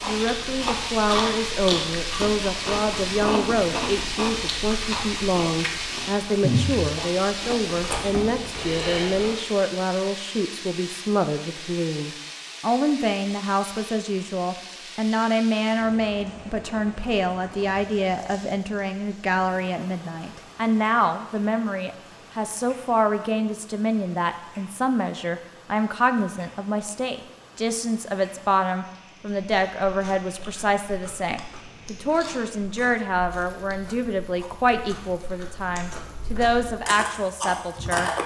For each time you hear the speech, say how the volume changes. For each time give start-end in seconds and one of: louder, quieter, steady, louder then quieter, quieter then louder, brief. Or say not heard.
0.0-38.1 steady.